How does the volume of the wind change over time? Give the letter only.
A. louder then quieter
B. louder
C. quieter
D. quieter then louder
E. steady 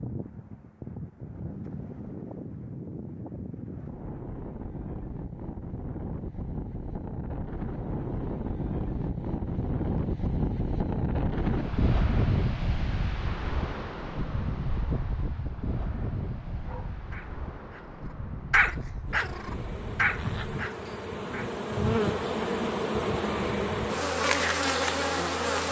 A.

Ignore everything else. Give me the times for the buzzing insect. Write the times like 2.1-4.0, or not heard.
19.1-25.6.